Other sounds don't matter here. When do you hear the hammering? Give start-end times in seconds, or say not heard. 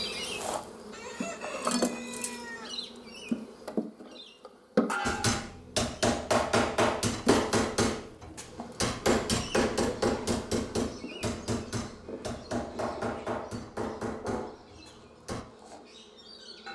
5.0-15.4.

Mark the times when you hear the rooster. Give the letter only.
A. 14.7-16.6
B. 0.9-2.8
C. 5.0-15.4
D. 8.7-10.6
B.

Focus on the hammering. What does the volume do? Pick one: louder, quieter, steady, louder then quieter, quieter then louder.
quieter.